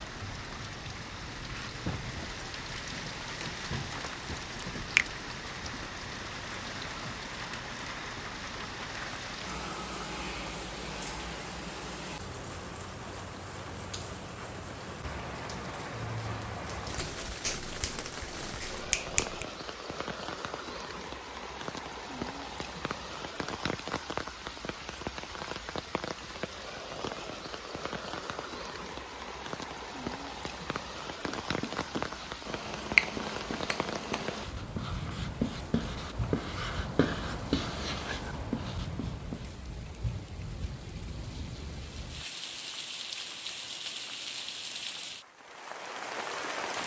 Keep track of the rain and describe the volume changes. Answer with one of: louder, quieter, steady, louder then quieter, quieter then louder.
steady.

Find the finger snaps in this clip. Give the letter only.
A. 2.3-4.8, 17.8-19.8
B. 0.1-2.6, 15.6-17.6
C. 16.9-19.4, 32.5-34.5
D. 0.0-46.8
C.